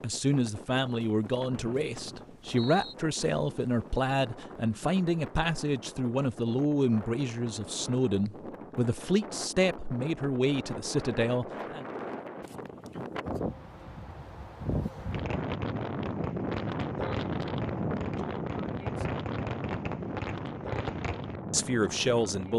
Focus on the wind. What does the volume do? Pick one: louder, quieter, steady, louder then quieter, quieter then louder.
louder.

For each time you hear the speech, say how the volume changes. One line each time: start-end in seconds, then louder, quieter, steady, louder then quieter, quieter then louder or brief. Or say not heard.
0.0-11.8 steady
21.5-22.5 brief.